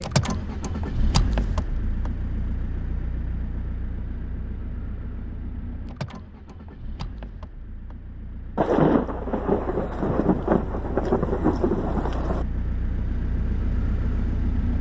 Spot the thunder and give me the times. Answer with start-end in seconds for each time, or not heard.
8.6-12.4.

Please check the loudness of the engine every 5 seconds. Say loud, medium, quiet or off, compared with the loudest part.
loud, medium, loud.